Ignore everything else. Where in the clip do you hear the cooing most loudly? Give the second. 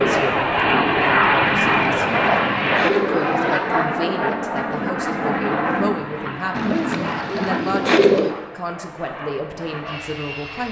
8 s.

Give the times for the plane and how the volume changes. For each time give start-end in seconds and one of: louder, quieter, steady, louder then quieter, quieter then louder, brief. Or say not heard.
0.0-10.6 quieter.